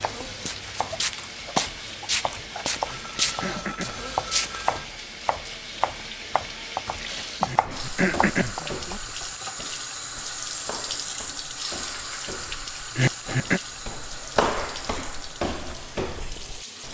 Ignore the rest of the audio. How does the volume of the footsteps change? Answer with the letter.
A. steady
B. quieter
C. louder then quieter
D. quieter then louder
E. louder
D.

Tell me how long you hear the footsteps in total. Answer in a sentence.
You can hear the footsteps for 14 seconds altogether.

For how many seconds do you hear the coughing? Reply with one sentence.
The coughing can be heard for 3 seconds in total.